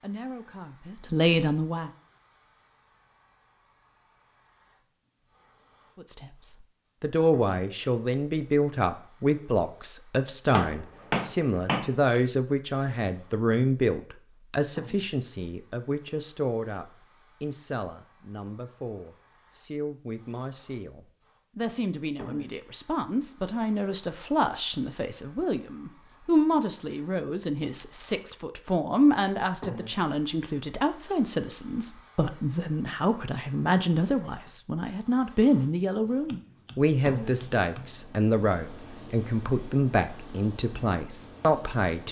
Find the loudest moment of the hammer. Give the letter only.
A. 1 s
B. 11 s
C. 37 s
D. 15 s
B.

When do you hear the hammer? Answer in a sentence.
The hammer can be heard from 10.5 to 11.9 s and from 36.0 to 38.0 s.